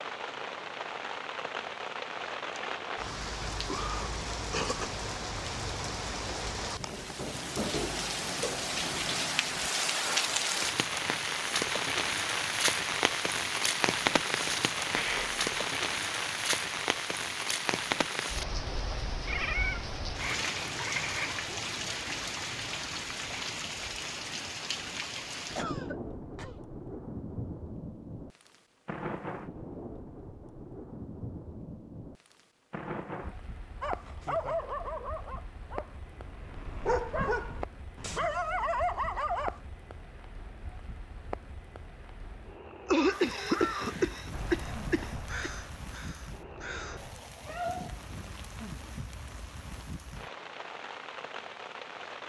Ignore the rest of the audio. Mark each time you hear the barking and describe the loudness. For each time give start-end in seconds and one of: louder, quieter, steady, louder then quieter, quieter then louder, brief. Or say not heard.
33.8-39.6 quieter then louder.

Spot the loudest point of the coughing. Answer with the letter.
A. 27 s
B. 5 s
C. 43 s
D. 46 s
C.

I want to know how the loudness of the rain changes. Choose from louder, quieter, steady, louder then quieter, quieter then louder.
quieter.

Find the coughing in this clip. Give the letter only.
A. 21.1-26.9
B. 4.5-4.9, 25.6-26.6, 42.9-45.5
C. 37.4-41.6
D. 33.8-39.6
B.